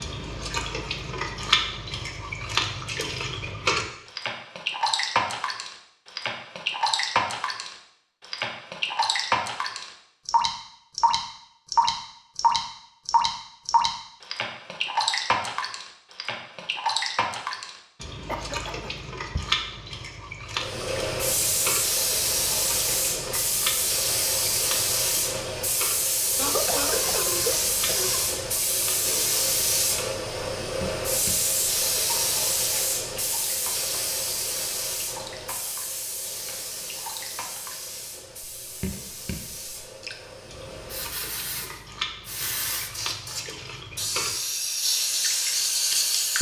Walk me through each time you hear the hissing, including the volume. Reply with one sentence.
You can hear the hissing from 20.6 to 46.3 s, getting quieter then louder.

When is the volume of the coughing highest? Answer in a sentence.
The loudest moment of the coughing is at 27 seconds.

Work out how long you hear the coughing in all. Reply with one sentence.
You can hear the coughing for 3 seconds altogether.